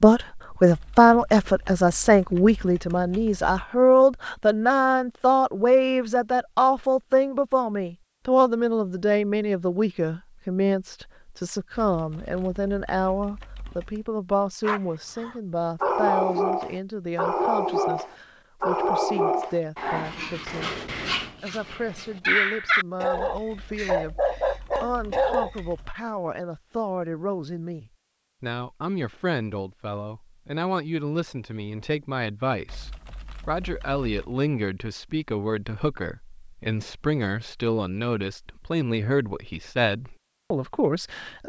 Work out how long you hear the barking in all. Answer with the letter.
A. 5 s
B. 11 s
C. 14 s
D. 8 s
B.